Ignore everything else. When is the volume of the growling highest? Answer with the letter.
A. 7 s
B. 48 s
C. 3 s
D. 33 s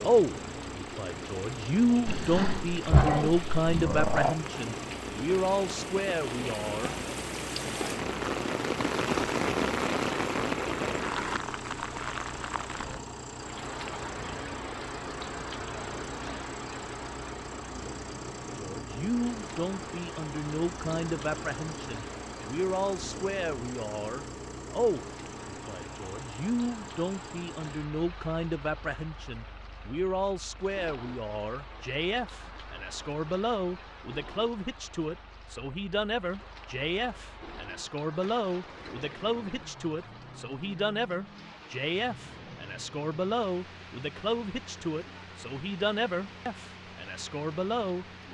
C.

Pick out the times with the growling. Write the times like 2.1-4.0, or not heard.
2.0-4.4.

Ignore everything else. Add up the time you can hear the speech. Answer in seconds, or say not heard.
37 s.